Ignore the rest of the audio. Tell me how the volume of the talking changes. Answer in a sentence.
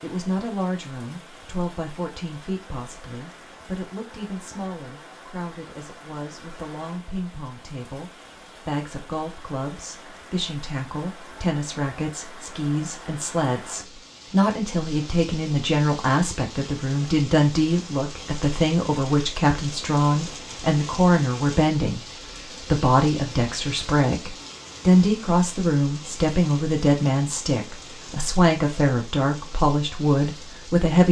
The loudness of the talking goes up.